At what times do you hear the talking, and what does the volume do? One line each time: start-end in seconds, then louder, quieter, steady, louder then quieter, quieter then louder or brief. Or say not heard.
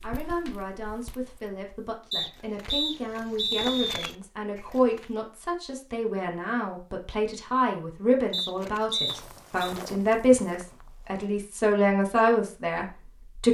0.0-13.4 louder.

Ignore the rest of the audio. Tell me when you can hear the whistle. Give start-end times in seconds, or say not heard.
2.1-4.1, 8.3-9.8.